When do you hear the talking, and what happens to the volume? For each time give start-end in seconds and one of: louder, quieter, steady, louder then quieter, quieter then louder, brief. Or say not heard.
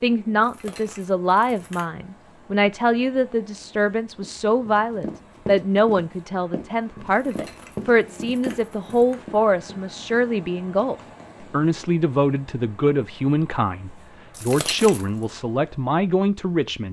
0.0-16.8 steady.